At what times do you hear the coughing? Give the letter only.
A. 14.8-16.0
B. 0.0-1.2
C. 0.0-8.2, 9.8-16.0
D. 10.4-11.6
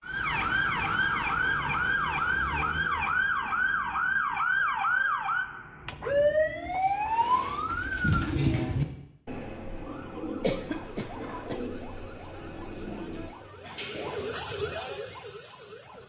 D.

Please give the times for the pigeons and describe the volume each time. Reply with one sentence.
The pigeons can be heard from 5.8 to 14.3 s, getting louder then quieter.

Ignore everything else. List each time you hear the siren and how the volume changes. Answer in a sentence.
You can hear the siren from 0.0 to 8.2 s, at a steady volume; and from 9.8 to 16.0 s, getting louder.